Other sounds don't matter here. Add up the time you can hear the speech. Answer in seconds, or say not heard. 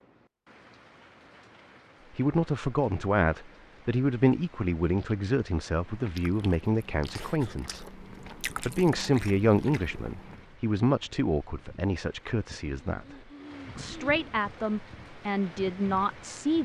13 s.